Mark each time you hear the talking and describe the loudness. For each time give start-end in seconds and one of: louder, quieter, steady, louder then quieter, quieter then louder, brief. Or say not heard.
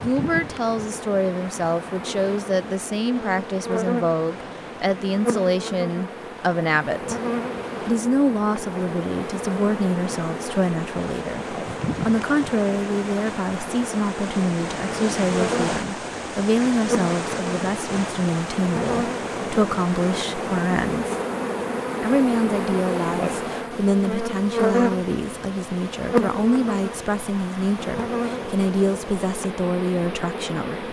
0.0-7.2 steady
7.8-21.1 steady
22.0-30.8 steady.